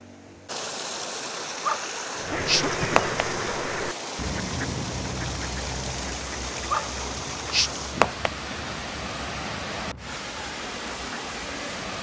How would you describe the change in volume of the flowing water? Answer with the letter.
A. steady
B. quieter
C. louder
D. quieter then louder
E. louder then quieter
A.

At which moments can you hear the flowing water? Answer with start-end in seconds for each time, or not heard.
0.0-11.9.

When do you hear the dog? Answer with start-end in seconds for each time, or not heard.
1.6-3.2, 6.7-8.3.